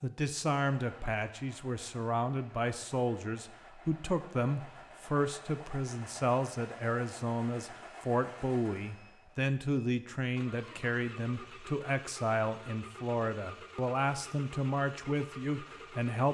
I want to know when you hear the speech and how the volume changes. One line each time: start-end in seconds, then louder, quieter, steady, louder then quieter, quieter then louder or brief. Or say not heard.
0.0-16.2 steady.